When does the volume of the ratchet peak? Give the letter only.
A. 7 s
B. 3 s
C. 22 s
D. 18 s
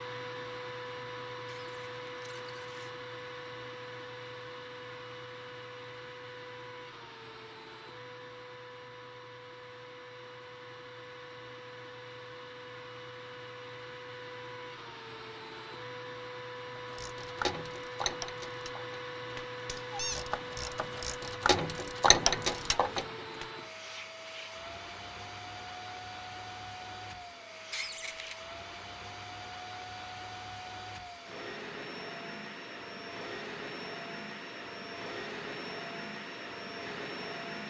C.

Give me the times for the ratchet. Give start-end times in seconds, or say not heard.
16.9-23.4.